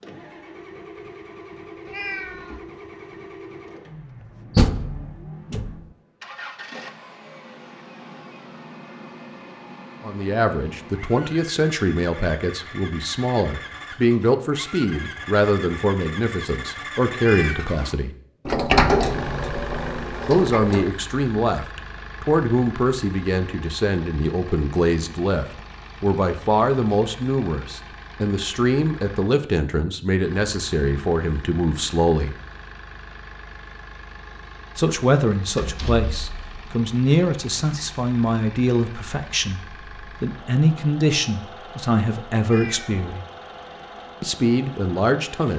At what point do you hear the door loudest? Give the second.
19 s.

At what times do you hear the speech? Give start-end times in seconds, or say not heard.
10.0-18.1, 20.2-32.4, 34.8-43.2, 44.2-45.5.